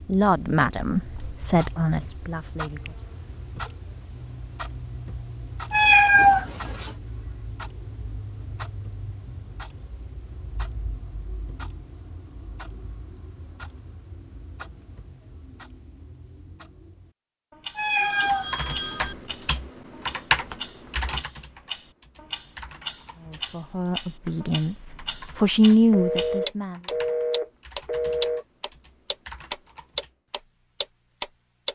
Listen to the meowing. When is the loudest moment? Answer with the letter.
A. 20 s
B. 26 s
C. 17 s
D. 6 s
D.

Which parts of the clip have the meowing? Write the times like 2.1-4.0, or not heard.
5.7-7.0, 17.8-19.1.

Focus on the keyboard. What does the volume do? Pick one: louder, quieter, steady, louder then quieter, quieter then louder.
quieter.